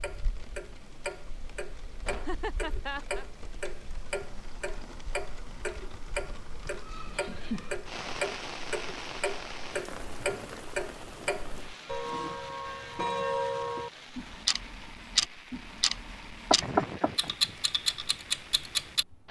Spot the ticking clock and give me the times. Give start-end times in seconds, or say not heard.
0.0-19.2.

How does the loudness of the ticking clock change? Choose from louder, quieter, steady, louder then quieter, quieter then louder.
louder.